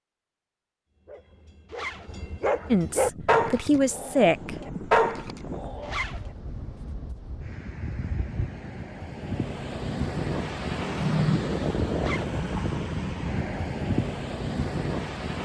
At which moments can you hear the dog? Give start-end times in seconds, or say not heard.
1.1-6.0.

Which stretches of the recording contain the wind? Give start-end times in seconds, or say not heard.
2.9-15.4.